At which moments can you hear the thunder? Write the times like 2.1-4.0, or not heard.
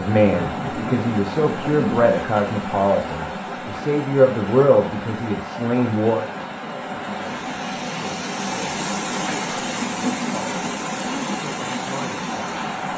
0.2-2.1.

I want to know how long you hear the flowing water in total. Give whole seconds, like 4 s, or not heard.
13 s.